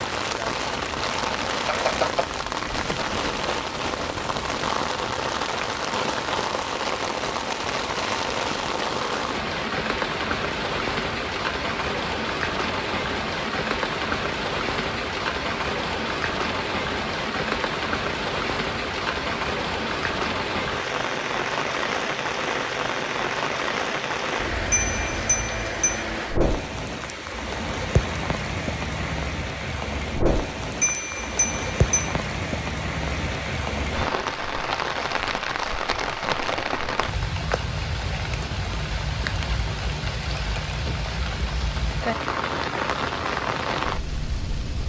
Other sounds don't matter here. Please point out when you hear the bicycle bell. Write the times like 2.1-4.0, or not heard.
1.6-2.4, 24.7-26.1, 30.8-32.1.